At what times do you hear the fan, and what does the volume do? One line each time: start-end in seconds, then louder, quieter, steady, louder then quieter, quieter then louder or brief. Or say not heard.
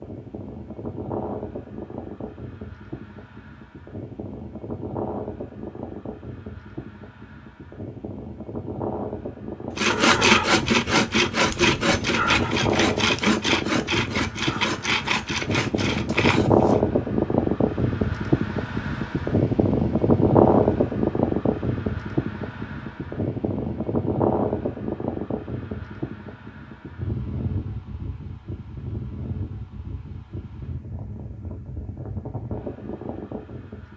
0.0-33.9 louder then quieter.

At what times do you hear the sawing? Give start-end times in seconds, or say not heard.
9.8-16.8.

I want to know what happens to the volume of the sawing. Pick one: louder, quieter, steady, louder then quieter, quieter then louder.
quieter.